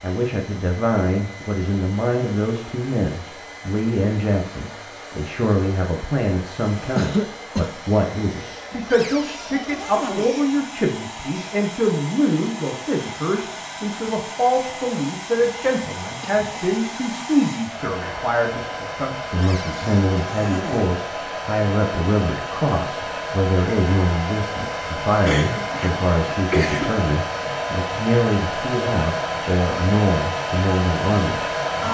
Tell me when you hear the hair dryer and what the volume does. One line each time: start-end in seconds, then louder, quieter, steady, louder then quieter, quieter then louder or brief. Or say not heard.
0.0-31.8 louder.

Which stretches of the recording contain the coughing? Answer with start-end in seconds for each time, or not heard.
7.0-7.7, 16.2-16.8, 25.2-26.9.